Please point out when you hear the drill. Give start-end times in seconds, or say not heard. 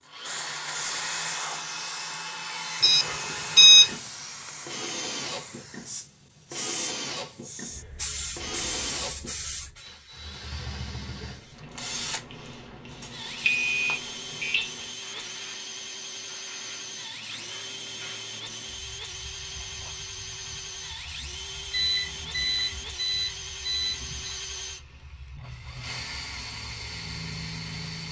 0.1-28.0.